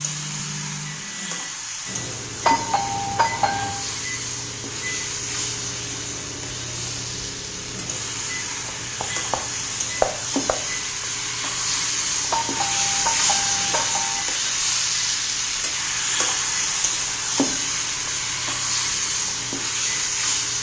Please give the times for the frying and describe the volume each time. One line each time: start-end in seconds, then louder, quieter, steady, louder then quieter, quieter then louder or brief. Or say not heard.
0.0-20.5 louder.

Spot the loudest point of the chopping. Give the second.
10 s.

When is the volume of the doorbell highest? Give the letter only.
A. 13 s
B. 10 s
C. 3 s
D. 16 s
C.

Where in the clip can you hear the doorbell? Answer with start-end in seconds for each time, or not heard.
2.4-3.9, 12.3-14.2.